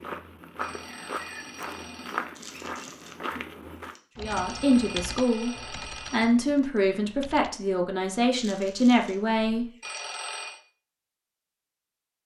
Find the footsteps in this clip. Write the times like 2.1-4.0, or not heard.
0.0-4.0.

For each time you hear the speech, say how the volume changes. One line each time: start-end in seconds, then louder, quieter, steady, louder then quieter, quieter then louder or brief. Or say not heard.
4.2-9.7 steady.